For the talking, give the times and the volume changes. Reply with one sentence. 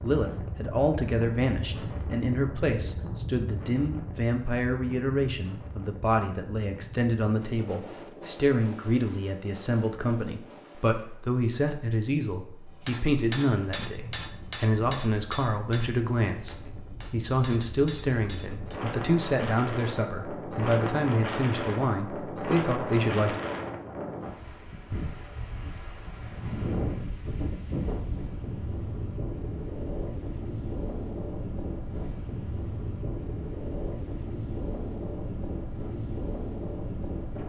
The talking can be heard from 0.0 to 23.4 s, at a steady volume.